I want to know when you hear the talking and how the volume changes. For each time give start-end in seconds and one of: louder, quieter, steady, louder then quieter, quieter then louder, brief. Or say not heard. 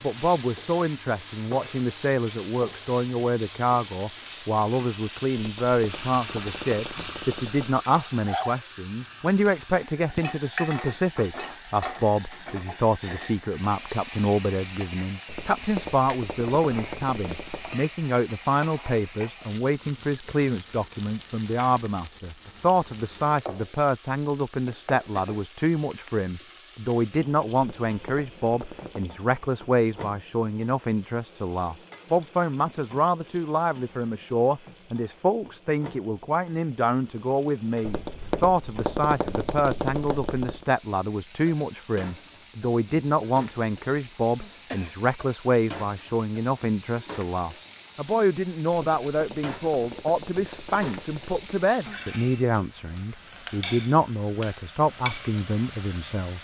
0.0-56.3 steady.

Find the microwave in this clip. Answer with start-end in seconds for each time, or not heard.
not heard.